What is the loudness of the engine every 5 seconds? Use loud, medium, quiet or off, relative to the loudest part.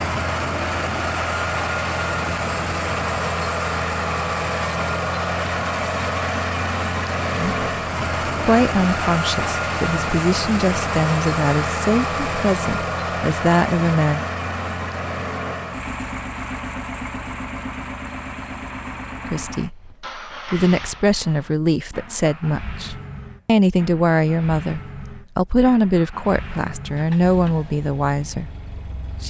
loud, loud, loud, medium, quiet, quiet.